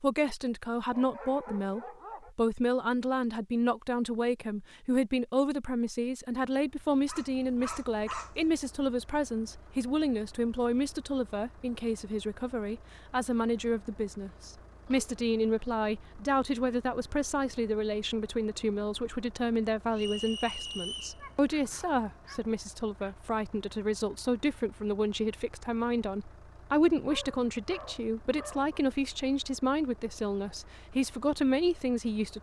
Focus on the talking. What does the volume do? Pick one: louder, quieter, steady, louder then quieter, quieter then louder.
steady.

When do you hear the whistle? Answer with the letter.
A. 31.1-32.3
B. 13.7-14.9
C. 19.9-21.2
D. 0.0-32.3
C.